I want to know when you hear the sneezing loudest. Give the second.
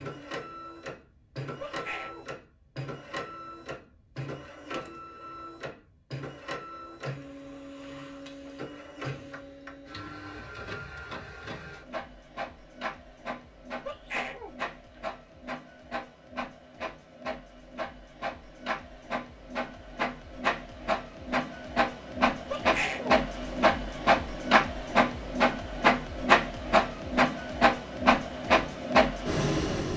23 s.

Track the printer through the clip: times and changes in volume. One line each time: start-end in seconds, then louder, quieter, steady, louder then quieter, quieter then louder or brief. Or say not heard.
0.0-29.9 louder.